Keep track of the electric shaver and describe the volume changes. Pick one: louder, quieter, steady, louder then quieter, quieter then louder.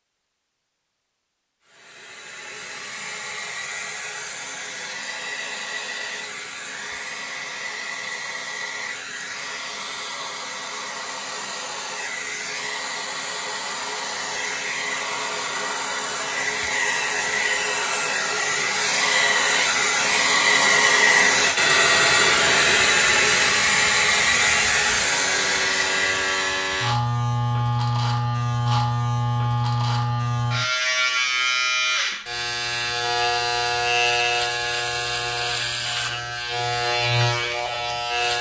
steady.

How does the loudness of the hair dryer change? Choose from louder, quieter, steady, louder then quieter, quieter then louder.
louder.